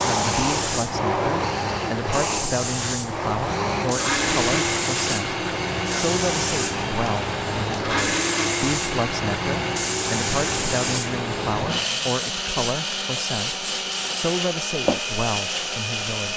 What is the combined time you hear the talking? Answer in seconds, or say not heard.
16 s.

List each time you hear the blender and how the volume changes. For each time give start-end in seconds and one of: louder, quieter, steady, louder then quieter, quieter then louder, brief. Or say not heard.
0.0-16.3 steady.